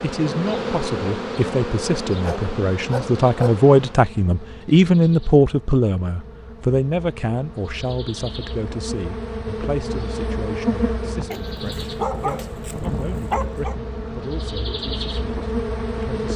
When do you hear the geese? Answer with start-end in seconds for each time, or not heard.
not heard.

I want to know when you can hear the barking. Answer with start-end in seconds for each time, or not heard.
2.2-3.7, 11.3-13.8.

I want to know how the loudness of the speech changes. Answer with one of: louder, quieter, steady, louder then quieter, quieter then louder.
louder then quieter.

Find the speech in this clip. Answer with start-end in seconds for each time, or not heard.
0.0-16.3.